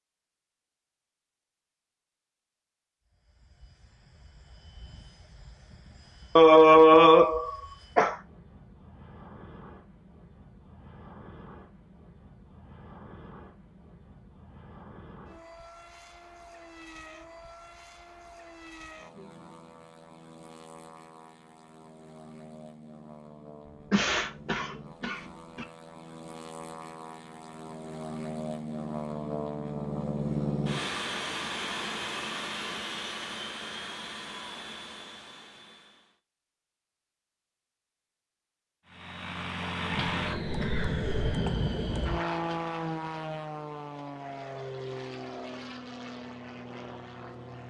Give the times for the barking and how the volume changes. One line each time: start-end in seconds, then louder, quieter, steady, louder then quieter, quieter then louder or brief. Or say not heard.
not heard.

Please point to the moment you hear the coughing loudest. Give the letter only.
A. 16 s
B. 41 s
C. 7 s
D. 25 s
C.